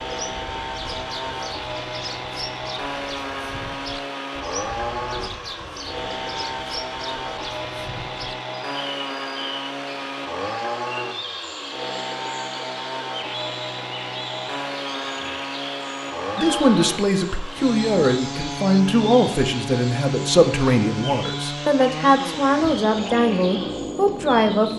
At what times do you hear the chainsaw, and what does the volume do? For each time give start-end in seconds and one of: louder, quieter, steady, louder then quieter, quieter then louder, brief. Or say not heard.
0.0-24.7 steady.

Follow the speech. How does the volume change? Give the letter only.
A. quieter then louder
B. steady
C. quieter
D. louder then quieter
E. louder
B.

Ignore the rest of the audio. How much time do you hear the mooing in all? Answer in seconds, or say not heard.
not heard.